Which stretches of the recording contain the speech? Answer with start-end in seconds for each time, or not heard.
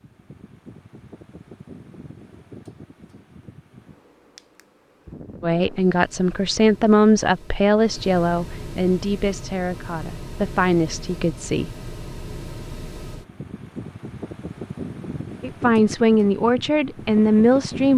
5.4-11.7, 15.4-17.9.